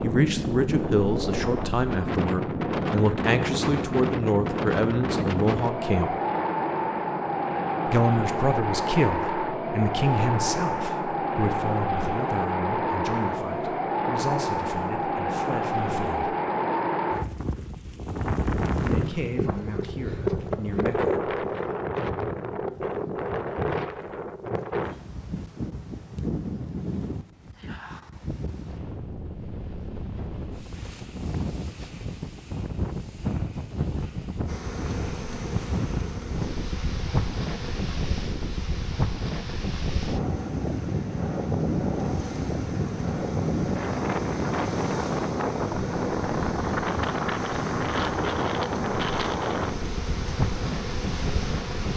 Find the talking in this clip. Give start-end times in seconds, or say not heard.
0.0-6.2, 7.8-16.4, 18.8-21.3.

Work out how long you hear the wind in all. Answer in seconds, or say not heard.
52 s.